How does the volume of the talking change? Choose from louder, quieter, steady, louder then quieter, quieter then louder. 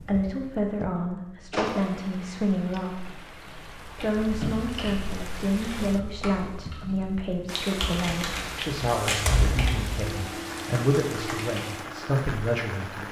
steady.